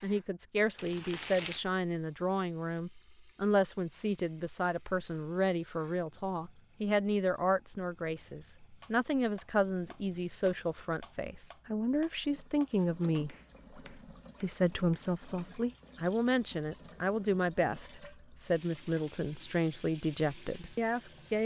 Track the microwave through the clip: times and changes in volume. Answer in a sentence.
The microwave can't be heard in this clip.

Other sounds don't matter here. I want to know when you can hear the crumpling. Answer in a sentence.
You can hear the crumpling from 0.8 to 1.6 s.